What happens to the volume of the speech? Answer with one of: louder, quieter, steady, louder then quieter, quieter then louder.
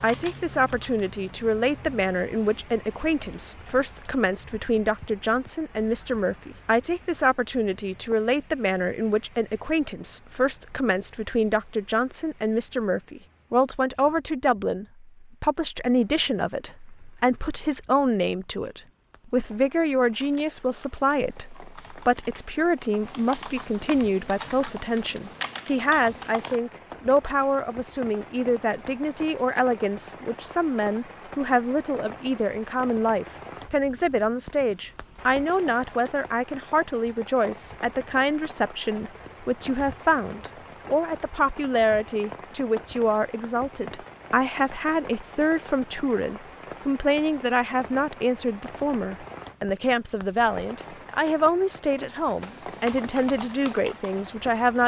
steady.